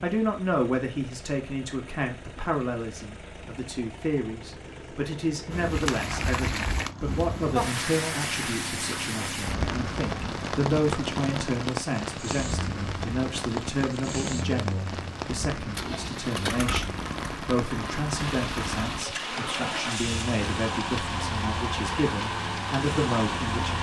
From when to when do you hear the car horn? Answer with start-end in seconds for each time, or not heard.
not heard.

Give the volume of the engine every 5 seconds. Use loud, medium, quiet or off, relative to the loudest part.
quiet, medium, medium, loud, loud.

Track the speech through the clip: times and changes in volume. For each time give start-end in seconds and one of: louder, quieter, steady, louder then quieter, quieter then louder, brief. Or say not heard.
0.0-23.7 steady.